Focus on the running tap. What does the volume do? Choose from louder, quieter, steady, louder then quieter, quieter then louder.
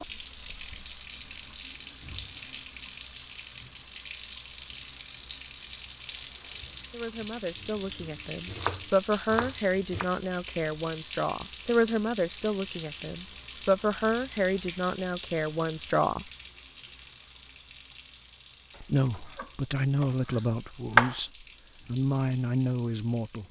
quieter.